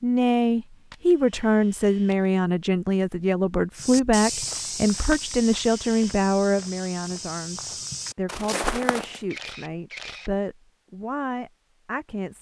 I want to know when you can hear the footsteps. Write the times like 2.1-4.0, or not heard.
3.8-9.2.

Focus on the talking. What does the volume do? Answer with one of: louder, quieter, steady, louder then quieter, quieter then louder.
quieter.